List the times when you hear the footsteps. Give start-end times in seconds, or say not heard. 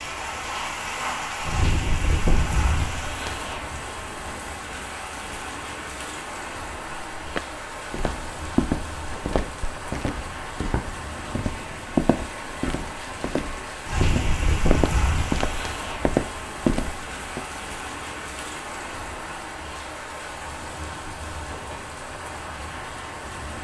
7.2-17.6.